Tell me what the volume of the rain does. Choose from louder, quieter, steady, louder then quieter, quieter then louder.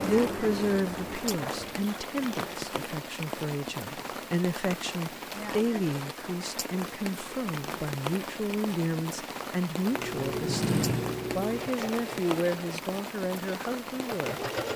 steady.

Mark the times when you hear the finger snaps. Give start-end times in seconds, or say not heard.
not heard.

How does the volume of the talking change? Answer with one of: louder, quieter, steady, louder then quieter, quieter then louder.
steady.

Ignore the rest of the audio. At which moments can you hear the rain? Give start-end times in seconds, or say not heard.
0.0-14.7.